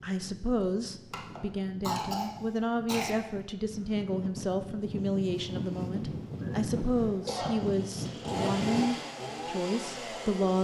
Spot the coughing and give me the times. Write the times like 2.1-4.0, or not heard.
1.1-3.1, 6.3-7.7.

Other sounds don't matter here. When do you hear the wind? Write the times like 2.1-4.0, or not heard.
0.0-8.8.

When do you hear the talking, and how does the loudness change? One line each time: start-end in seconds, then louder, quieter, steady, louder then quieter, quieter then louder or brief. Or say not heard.
0.0-10.5 steady.